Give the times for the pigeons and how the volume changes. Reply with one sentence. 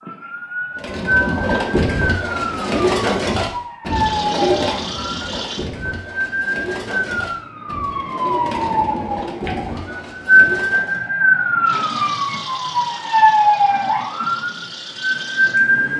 You can hear the pigeons from 0.8 to 11.1 s, getting quieter.